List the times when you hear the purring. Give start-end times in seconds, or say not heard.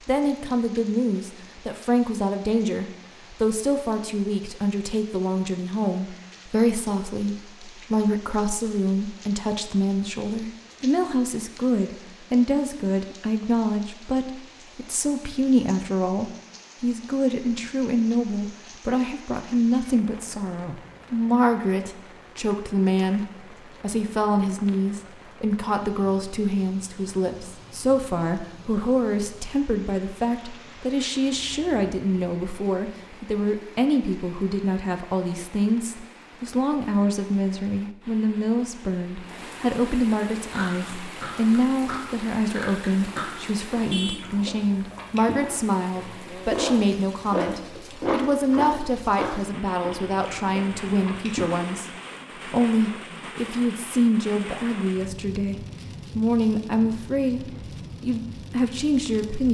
not heard.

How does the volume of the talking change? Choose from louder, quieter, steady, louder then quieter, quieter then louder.
steady.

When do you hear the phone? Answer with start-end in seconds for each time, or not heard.
not heard.